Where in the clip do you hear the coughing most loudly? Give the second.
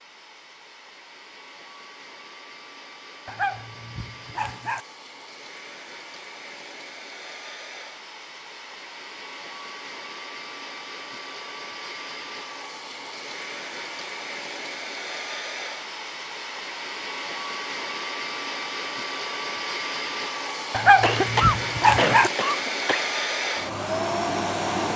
21 s.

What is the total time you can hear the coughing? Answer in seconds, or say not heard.
2 s.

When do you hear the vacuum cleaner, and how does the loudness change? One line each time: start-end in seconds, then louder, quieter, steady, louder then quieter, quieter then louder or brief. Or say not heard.
0.0-24.9 louder.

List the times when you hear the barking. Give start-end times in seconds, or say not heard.
3.2-4.8, 20.7-22.3.